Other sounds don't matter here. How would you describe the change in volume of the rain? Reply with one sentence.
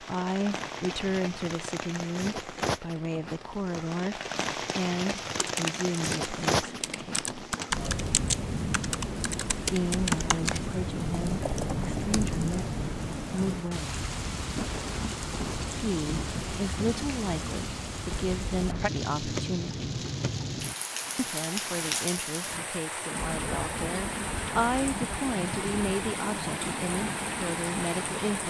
The loudness of the rain stays about the same.